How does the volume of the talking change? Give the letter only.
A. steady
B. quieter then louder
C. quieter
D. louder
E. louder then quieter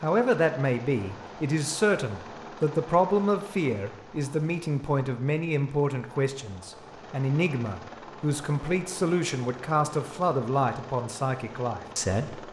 A.